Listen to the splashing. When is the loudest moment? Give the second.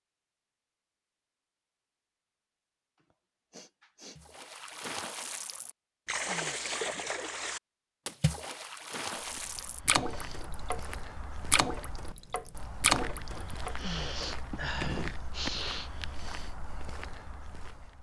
13 s.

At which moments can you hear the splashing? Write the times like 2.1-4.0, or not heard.
4.2-13.8.